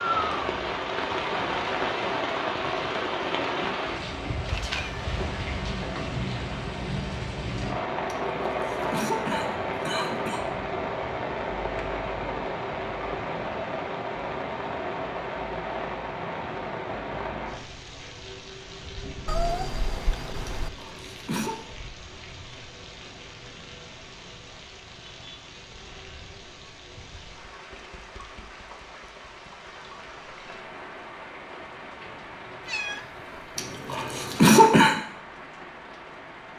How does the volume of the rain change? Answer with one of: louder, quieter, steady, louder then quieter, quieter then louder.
quieter.